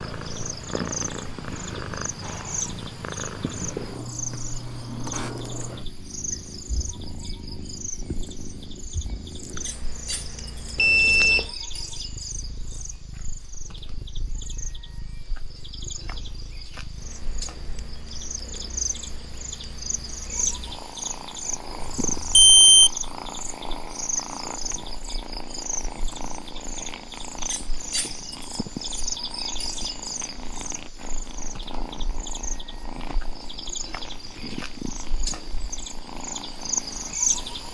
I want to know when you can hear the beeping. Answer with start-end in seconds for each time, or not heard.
10.8-11.4, 21.8-22.9.